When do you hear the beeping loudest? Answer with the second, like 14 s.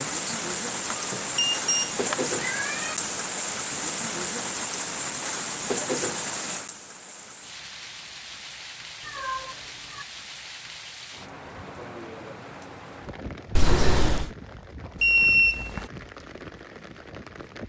15 s.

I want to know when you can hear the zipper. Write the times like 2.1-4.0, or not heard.
not heard.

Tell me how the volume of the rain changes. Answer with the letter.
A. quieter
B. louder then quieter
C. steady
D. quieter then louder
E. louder
A.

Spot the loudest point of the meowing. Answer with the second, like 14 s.
14 s.